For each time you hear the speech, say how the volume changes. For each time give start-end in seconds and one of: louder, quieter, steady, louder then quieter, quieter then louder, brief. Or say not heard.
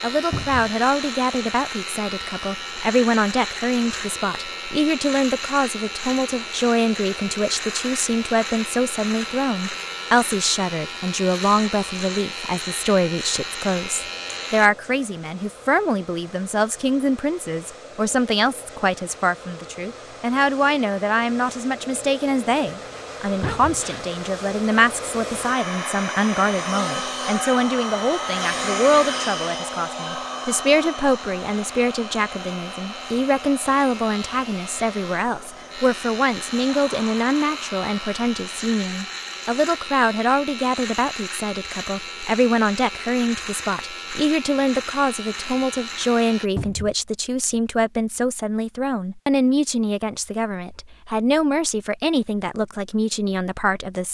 0.0-54.0 steady.